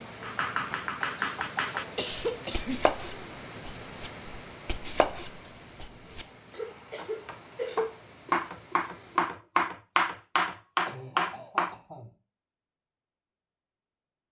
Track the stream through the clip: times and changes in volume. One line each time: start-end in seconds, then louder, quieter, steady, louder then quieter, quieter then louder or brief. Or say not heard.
0.0-9.3 quieter.